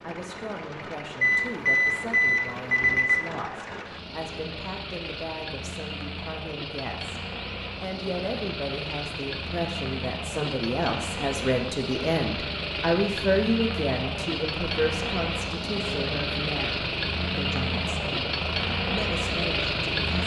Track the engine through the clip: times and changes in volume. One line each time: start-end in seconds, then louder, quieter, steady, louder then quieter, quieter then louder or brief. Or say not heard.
0.0-20.2 louder.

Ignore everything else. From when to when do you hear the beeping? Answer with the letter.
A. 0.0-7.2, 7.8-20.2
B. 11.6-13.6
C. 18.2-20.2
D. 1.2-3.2
D.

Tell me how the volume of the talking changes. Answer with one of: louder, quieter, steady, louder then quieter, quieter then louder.
louder then quieter.